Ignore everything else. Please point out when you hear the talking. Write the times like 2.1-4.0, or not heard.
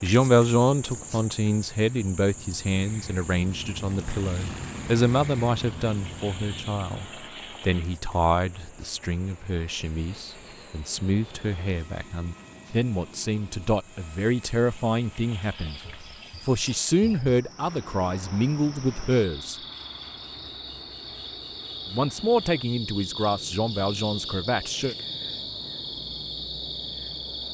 0.0-19.6, 21.9-24.9.